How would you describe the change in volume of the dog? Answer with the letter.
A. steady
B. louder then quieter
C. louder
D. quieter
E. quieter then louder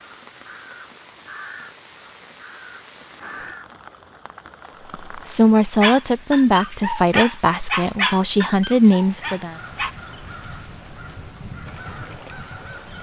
B.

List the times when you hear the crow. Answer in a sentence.
The crow can be heard from 0.0 to 3.7 s and from 9.5 to 12.9 s.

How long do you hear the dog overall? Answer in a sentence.
You can hear the dog for 4 seconds altogether.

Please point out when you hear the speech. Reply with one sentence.
The speech can be heard from 5.1 to 9.6 s.